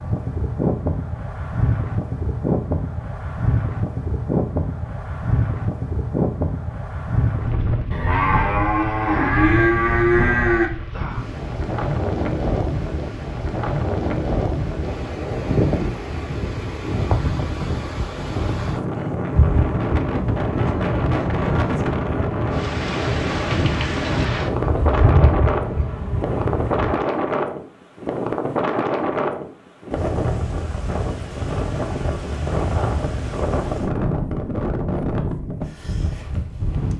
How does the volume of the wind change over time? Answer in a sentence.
The volume of the wind stays about the same.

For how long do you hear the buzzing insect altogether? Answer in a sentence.
You can hear the buzzing insect for 8 seconds altogether.